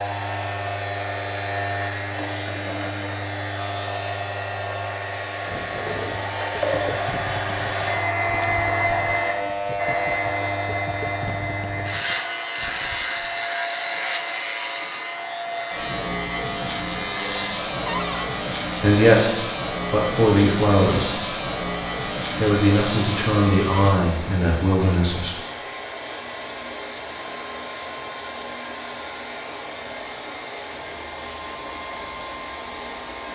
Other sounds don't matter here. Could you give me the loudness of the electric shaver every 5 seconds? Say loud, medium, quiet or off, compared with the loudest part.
loud, loud, loud, loud, loud, quiet, quiet.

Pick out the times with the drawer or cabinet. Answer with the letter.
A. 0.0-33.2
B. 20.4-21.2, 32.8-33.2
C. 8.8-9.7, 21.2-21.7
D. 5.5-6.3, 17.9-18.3
D.